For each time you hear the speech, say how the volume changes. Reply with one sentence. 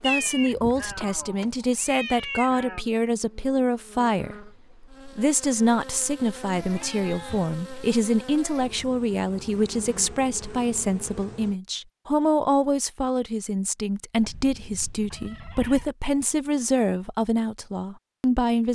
The speech can be heard from 0.0 to 18.7 s, at a steady volume.